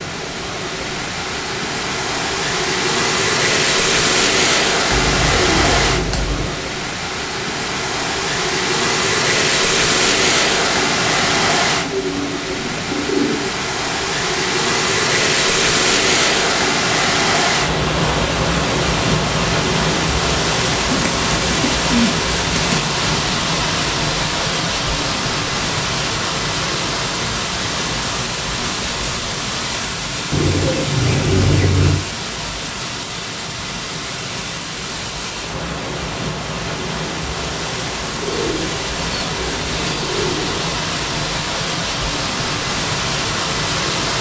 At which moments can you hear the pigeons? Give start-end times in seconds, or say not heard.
4.9-6.7, 11.8-13.6, 20.9-22.9, 30.3-32.0, 38.2-40.7.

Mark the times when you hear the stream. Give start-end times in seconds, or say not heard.
0.0-44.1.